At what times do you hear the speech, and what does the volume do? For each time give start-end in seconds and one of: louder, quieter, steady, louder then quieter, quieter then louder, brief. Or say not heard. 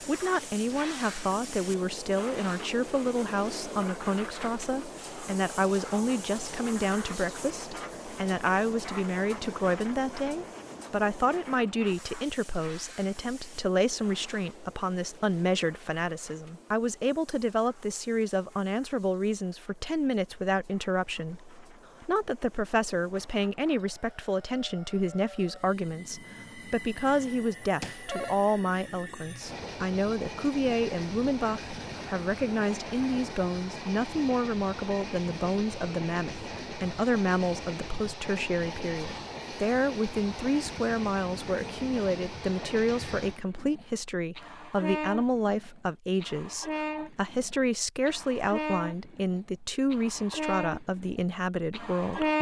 0.0-52.3 steady.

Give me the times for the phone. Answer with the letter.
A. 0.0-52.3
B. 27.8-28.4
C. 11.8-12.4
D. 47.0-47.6
B.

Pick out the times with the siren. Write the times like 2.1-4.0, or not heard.
not heard.